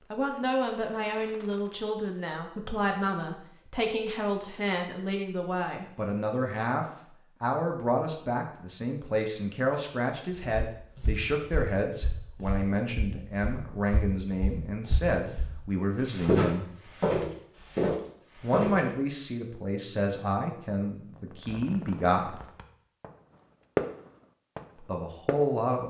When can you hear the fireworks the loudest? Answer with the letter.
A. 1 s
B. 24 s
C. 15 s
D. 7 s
B.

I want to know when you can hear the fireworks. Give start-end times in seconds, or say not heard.
0.0-1.8, 21.1-25.7.